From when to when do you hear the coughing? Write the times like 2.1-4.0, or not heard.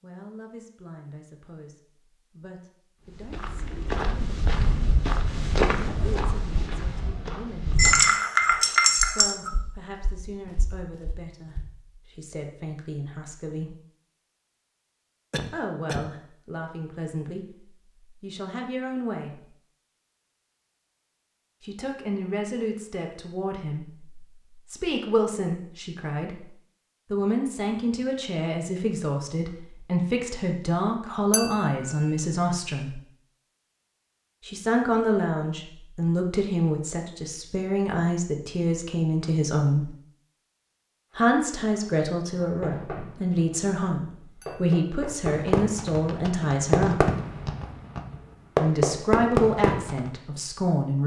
15.3-16.1.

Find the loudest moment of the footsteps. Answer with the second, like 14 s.
6 s.